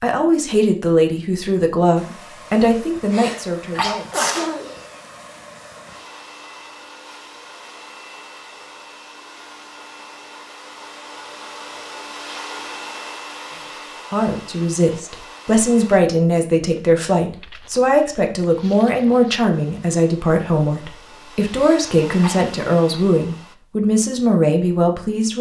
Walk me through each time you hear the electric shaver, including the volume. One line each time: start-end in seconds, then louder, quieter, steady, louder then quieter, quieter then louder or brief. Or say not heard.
not heard.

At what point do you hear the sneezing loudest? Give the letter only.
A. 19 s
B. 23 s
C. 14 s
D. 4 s
D.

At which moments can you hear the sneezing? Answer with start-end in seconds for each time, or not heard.
3.1-4.8, 21.6-22.5.